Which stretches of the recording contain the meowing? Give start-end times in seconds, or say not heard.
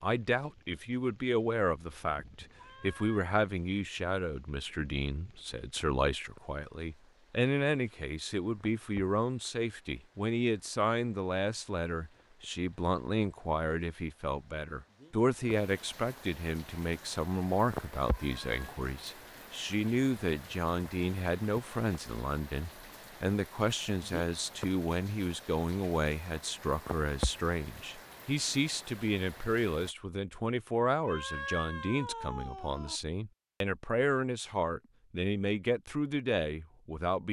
2.5-3.3, 18.1-18.6, 31.0-33.0.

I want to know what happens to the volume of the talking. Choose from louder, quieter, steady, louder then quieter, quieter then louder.
steady.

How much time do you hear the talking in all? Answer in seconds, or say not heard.
37 s.